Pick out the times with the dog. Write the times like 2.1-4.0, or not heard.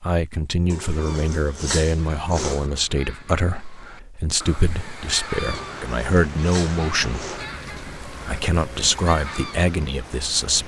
0.7-2.7, 5.5-7.5.